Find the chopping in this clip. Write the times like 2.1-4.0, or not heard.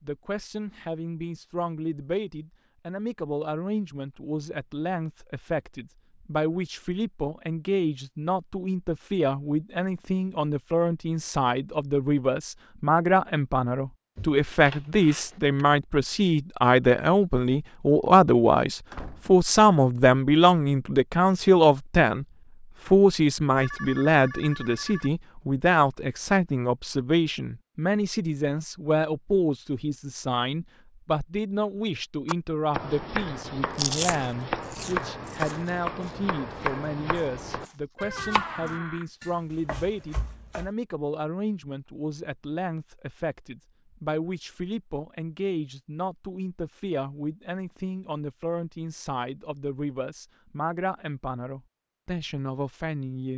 32.2-40.7.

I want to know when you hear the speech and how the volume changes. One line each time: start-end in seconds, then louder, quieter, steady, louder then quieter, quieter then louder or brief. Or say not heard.
0.0-22.2 louder
22.9-53.3 quieter.